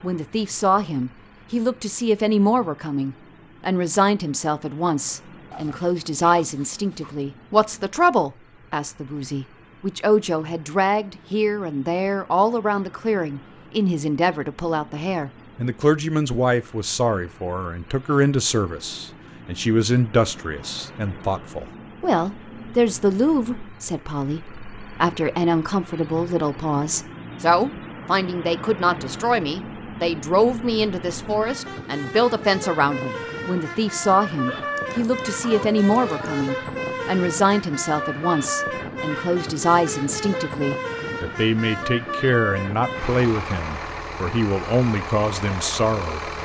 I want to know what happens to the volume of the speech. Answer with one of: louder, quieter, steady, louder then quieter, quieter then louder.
steady.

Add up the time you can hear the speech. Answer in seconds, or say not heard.
46 s.